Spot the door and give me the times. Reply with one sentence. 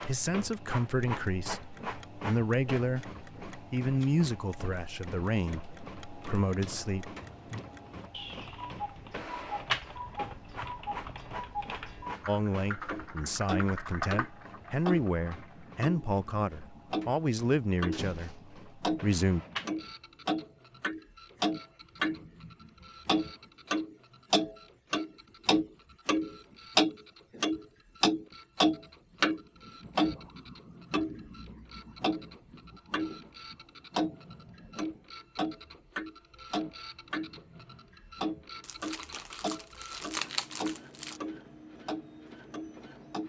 You can hear the door from 17.9 to 18.7 s.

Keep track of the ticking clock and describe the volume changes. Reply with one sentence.
The loudness of the ticking clock goes up, then down.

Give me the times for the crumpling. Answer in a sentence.
The crumpling can be heard from 38.6 to 41.2 s.